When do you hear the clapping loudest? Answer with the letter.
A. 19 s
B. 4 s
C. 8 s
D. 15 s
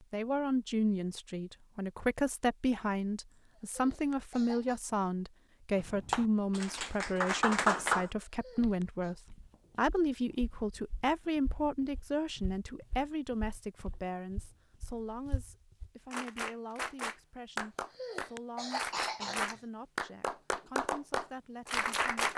C.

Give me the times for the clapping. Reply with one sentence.
You can hear the clapping from 5.8 to 8.1 s and from 16.1 to 22.3 s.